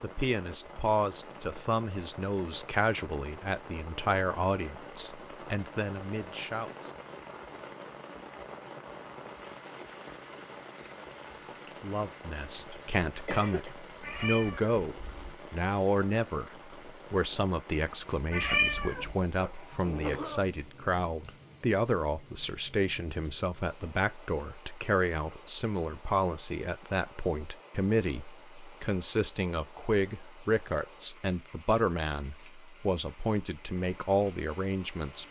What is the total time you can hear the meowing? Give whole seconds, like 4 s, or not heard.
2 s.